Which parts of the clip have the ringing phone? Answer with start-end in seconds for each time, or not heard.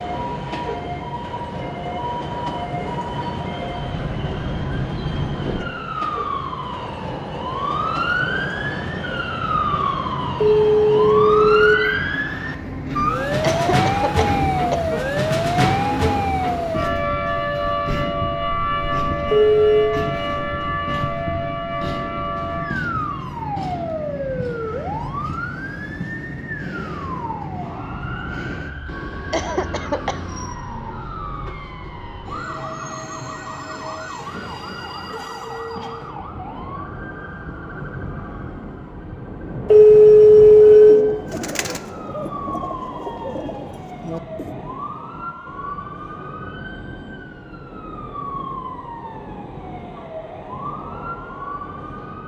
10.4-11.8, 19.3-19.9, 39.6-41.0.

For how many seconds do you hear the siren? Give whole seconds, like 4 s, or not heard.
52 s.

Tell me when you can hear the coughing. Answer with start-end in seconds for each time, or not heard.
13.4-15.1, 29.1-30.2.